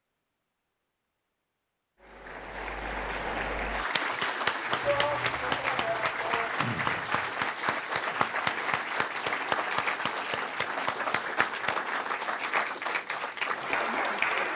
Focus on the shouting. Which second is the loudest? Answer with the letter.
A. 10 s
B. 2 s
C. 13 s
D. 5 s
D.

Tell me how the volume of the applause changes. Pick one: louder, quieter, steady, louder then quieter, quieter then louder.
steady.